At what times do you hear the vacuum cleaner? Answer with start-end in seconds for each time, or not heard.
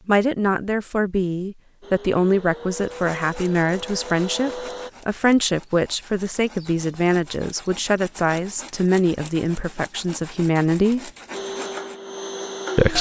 1.8-4.9, 11.3-12.9.